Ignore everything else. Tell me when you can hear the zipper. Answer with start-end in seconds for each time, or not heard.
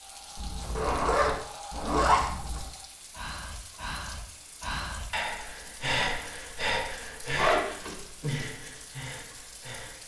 0.3-2.6, 7.3-8.0.